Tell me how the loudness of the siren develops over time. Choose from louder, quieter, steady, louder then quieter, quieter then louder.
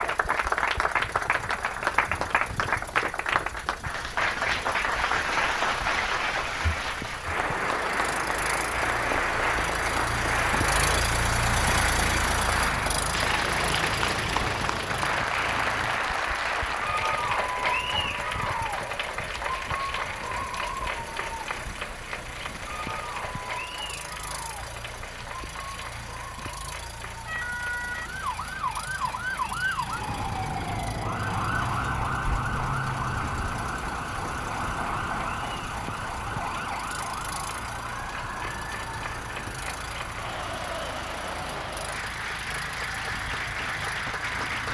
quieter.